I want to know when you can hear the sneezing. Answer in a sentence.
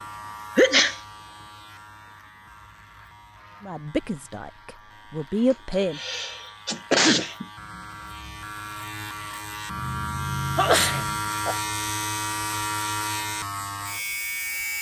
The sneezing can be heard from 0.6 to 1.0 s, from 5.7 to 7.5 s and from 10.6 to 11.6 s.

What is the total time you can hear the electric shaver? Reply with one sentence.
The electric shaver can be heard for 15 seconds in total.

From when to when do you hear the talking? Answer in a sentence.
You can hear the talking from 3.6 to 6.0 s.